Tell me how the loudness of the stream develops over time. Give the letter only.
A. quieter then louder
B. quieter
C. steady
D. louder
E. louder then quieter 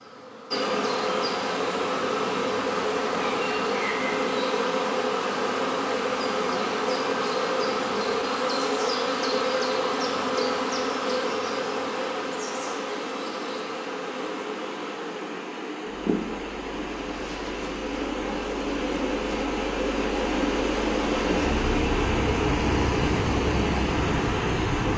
D.